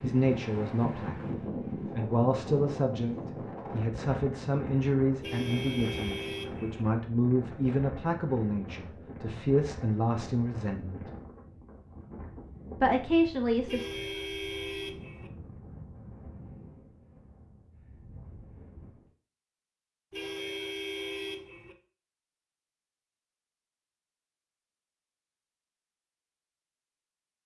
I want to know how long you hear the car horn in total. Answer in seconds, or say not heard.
5 s.